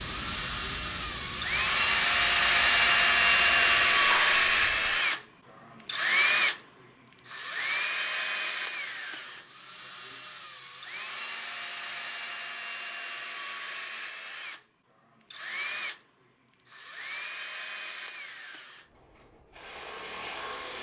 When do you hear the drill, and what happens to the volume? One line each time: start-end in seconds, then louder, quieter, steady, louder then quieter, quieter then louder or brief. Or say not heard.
0.0-20.7 quieter.